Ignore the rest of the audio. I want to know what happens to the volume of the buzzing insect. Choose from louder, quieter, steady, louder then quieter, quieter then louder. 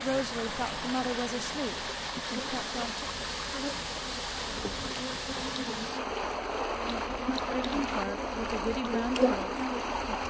louder.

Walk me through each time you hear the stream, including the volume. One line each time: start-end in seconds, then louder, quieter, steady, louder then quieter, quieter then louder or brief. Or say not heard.
0.0-10.2 steady.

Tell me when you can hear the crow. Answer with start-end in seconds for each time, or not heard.
not heard.